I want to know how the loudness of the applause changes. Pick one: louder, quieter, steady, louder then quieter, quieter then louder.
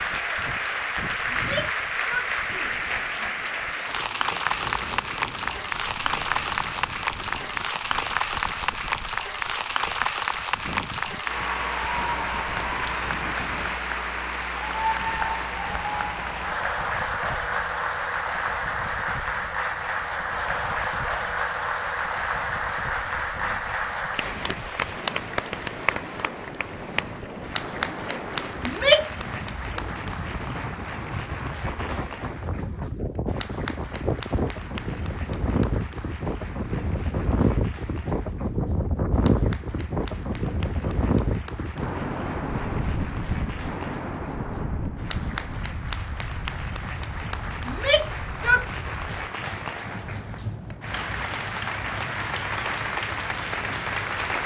quieter then louder.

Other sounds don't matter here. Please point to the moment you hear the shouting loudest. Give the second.
29 s.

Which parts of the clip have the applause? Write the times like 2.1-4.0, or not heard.
0.0-54.4.